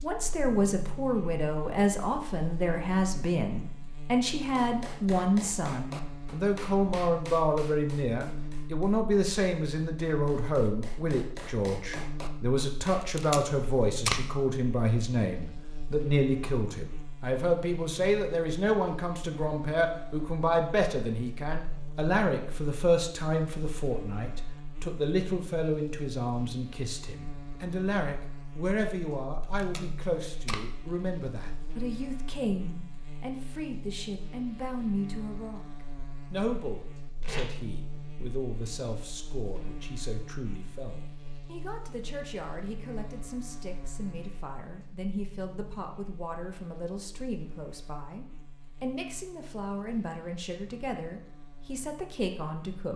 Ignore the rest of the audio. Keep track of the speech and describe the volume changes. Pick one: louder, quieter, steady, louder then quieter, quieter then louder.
quieter.